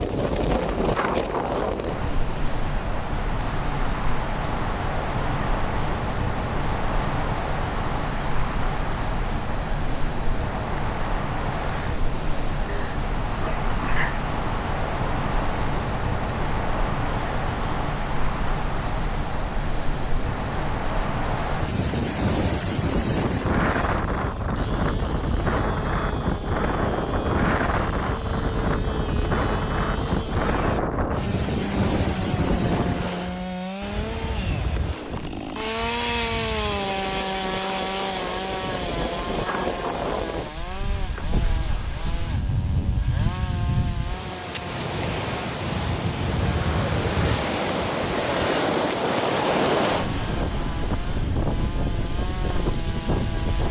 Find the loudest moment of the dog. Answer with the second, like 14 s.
14 s.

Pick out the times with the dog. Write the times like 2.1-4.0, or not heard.
12.7-14.2.